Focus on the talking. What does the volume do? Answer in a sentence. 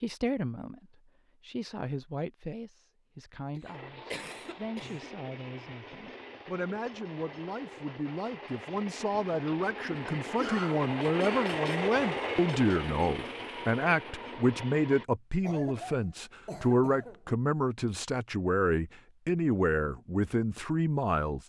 The volume of the talking goes up.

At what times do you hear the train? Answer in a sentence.
You can hear the train from 3.6 to 15.1 s.